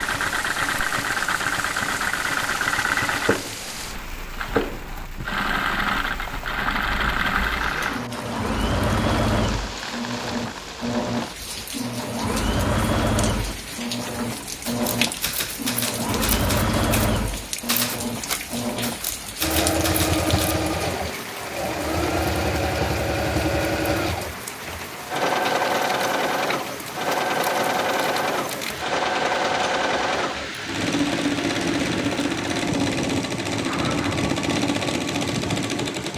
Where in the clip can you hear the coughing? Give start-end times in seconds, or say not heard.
not heard.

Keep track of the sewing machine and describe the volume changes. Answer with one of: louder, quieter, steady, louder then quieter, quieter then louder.
steady.